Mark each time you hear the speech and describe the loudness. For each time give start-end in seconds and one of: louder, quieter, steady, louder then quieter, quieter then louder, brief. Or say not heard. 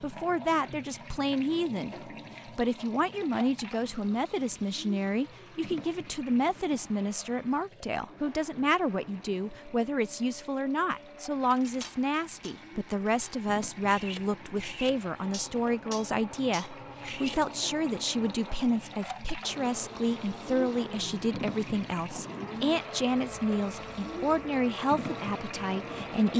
0.0-26.3 steady.